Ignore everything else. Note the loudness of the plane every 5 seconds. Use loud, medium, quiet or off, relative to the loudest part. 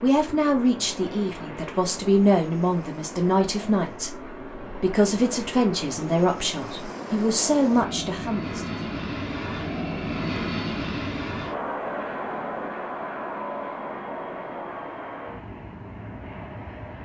medium, loud, loud, medium.